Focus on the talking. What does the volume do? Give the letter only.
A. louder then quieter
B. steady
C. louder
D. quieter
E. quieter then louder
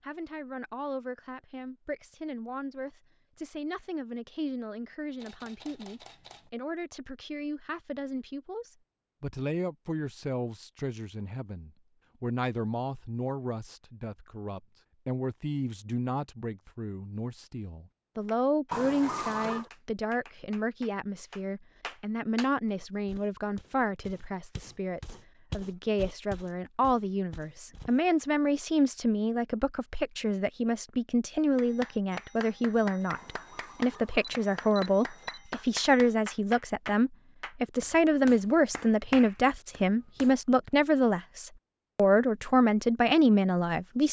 C.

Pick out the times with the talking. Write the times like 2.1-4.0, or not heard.
0.0-44.0.